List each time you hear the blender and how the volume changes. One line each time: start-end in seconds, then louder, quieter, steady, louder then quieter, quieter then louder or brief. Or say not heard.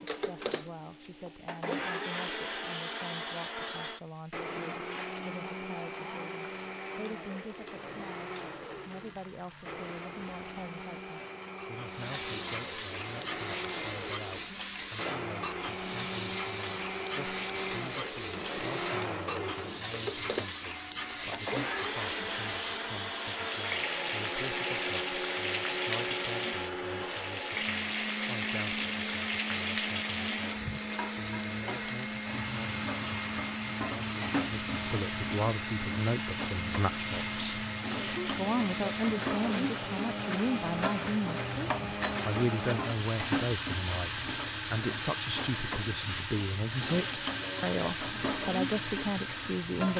0.0-49.9 steady.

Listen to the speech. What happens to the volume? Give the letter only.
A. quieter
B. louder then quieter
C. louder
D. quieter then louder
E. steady
C.